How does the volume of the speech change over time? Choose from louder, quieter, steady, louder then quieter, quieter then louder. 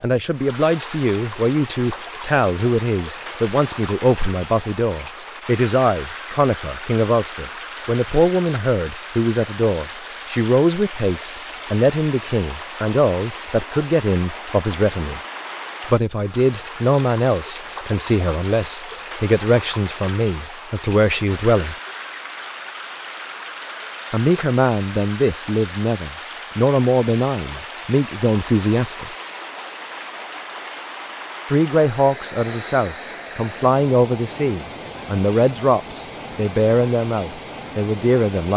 steady.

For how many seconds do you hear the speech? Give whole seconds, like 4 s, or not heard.
33 s.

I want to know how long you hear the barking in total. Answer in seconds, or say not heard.
not heard.